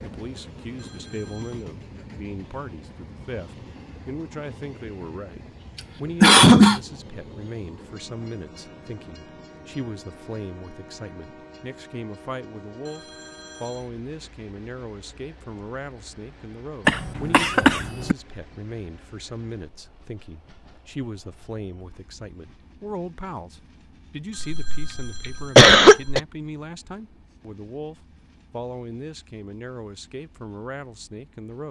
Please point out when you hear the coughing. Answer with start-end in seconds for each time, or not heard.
6.2-6.8, 16.9-18.1, 24.4-26.2.